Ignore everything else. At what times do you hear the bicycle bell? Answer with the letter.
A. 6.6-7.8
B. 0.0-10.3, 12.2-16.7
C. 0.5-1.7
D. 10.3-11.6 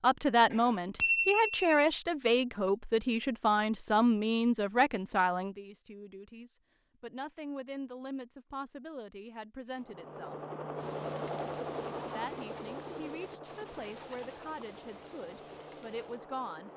C.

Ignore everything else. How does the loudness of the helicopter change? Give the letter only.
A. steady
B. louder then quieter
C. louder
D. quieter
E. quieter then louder
D.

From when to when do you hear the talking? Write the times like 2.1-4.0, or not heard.
0.0-10.3, 12.2-16.7.